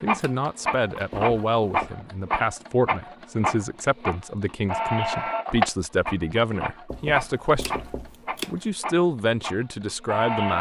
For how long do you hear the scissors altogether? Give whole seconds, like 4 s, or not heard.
2 s.